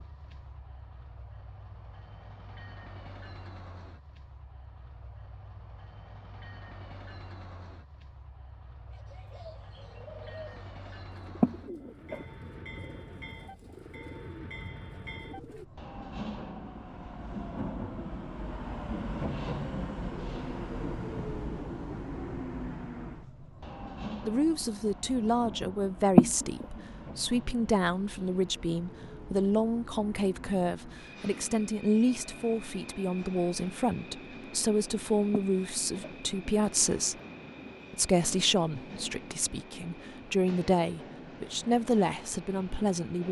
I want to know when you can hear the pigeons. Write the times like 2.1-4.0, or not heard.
8.9-15.7.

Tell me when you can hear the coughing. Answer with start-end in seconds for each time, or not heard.
11.4-12.2, 26.1-26.6, 35.4-37.7.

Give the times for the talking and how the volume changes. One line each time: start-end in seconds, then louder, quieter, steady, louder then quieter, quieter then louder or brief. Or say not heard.
24.2-37.1 steady
37.9-43.2 quieter then louder.